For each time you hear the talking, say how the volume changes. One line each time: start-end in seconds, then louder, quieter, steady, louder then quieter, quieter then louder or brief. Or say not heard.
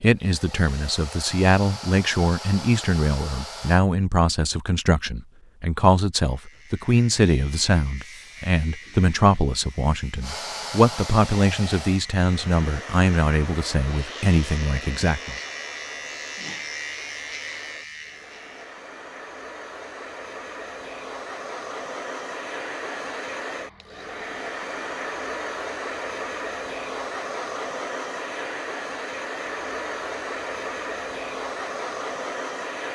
0.0-15.3 steady.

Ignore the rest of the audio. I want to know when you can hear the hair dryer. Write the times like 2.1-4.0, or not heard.
0.0-3.8, 10.2-32.9.